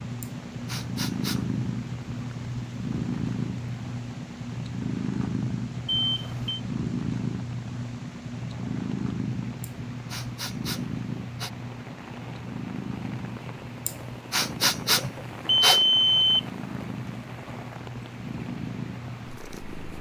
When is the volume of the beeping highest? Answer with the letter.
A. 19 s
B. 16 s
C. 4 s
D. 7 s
B.